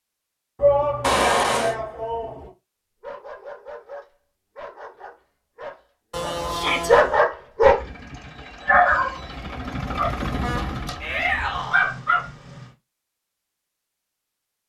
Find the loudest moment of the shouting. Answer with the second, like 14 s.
1 s.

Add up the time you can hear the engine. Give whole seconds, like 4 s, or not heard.
5 s.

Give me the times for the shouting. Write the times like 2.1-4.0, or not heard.
0.6-2.5, 6.5-6.9, 11.0-11.8.